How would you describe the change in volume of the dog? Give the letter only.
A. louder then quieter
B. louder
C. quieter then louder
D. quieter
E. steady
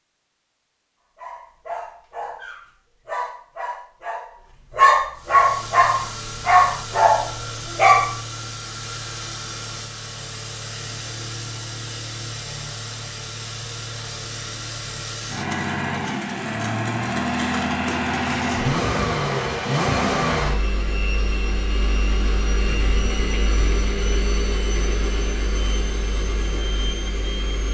B.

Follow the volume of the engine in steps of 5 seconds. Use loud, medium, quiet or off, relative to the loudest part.
off, medium, medium, loud, loud, medium.